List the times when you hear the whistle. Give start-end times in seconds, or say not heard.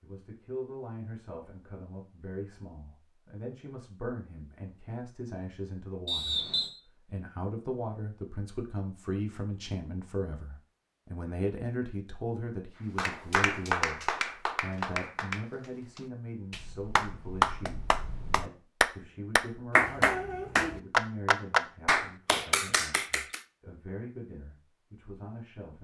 6.0-6.8.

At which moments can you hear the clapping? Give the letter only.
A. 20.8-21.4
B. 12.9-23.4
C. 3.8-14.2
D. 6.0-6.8
B.